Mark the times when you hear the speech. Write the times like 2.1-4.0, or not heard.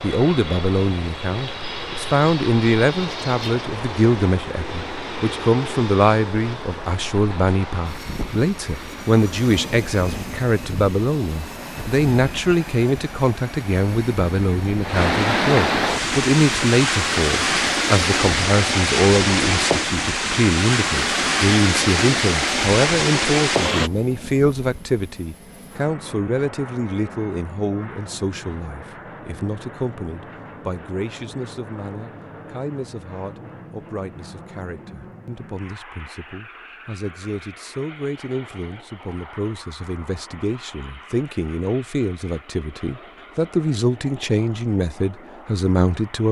0.0-46.2.